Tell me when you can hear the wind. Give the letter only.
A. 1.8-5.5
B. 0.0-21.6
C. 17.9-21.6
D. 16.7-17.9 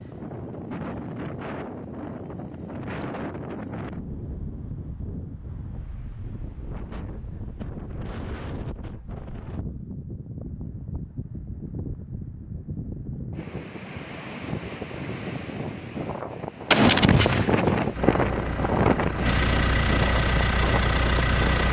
B.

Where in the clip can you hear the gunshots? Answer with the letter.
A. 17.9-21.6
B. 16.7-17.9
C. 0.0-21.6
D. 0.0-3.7
B.